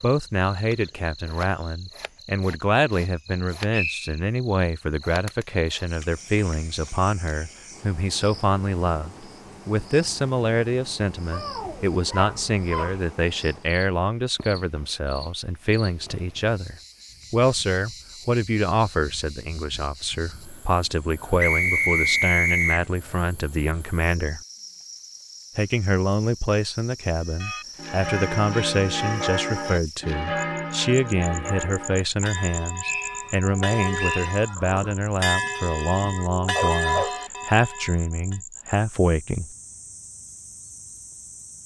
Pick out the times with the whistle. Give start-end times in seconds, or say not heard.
3.7-4.2, 21.4-22.9, 32.8-34.3.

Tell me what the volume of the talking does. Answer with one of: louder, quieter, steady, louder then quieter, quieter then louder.
steady.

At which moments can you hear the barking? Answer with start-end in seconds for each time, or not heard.
11.3-13.0, 36.5-37.1.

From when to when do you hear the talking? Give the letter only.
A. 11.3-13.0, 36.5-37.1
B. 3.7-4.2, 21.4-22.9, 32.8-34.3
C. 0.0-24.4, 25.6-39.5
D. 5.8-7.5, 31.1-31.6
C.